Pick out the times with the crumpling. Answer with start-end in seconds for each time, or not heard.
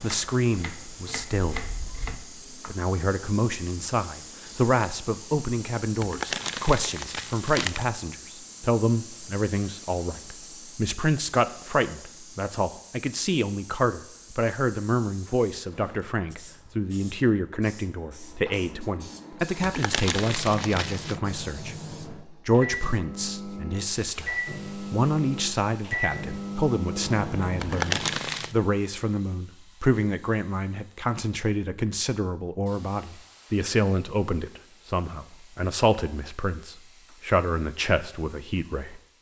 6.0-7.8, 19.6-21.2, 27.6-28.6.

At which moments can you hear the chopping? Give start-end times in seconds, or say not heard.
0.0-2.8.